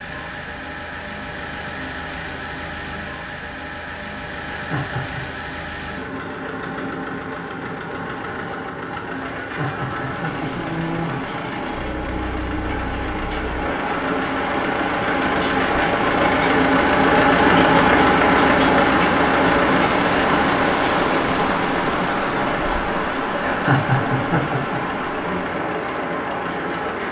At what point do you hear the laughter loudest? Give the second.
24 s.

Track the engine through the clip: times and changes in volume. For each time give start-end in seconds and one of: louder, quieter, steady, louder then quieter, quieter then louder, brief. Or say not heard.
0.0-27.0 louder then quieter.